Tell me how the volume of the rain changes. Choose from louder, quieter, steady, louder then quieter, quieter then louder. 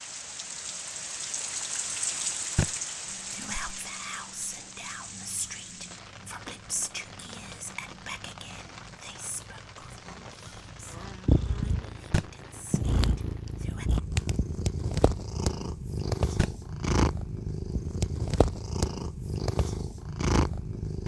quieter.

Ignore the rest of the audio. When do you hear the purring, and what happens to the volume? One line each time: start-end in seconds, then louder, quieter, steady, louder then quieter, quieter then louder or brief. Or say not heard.
5.0-21.0 louder.